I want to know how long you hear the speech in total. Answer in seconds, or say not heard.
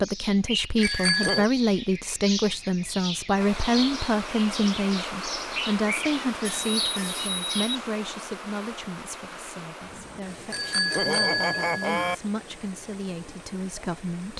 14 s.